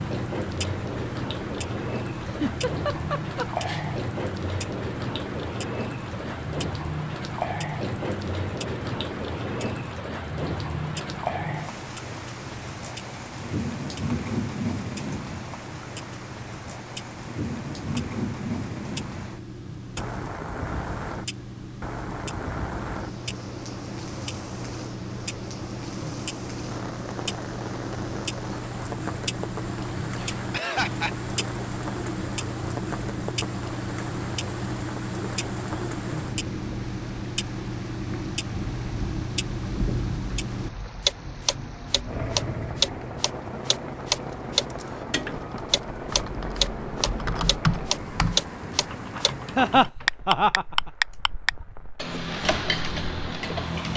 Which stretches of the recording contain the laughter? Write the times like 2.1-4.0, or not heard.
2.2-3.9, 30.1-31.1, 49.5-50.6.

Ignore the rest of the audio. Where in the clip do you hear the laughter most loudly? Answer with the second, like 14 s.
50 s.